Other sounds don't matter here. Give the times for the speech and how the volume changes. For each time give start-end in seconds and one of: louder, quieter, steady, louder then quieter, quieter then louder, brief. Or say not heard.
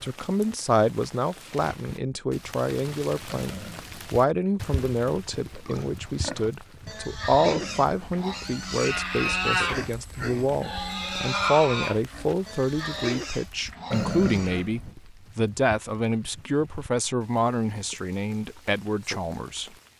0.0-19.7 steady.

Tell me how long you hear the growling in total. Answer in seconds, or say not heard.
3 s.